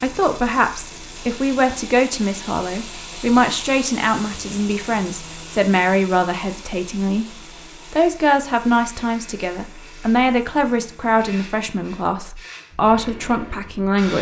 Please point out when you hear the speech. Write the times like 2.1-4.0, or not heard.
0.0-7.2, 7.9-14.1.